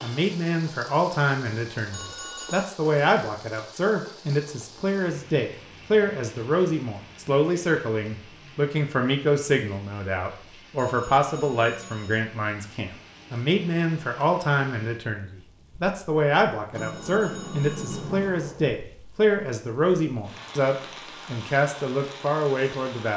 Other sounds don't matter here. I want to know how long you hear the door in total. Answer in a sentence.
The door can be heard for 2 seconds in total.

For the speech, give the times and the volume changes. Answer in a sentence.
The speech can be heard from 0.0 to 23.1 s, at a steady volume.